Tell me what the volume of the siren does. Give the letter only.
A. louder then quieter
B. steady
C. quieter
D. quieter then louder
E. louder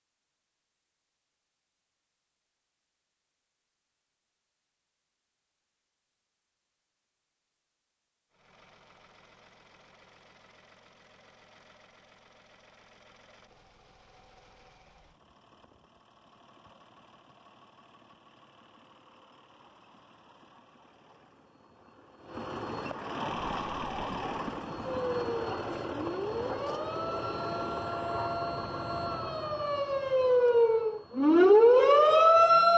E.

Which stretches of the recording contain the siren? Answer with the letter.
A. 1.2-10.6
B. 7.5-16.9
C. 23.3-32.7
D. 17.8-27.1
C.